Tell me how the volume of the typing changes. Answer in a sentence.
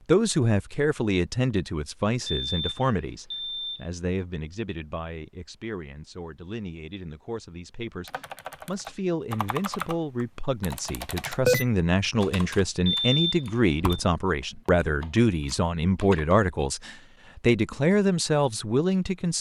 The volume of the typing goes up, then down.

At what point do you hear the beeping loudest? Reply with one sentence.
The loudest moment of the beeping is at 13 seconds.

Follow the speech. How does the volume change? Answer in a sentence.
The loudness of the speech goes down, then up.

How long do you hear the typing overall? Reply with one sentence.
You can hear the typing for 8 seconds altogether.